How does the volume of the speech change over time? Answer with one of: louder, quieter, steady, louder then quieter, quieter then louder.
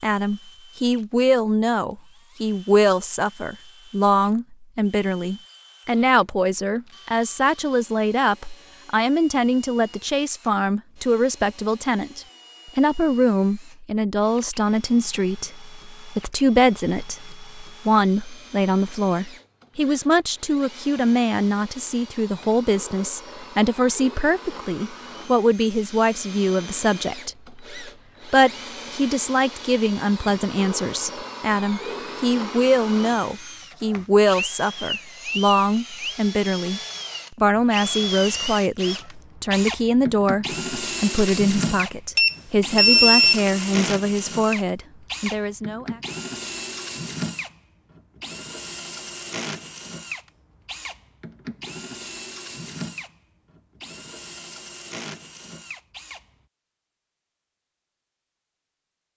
steady.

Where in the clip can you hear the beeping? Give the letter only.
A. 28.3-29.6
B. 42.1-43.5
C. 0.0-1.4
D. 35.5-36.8
B.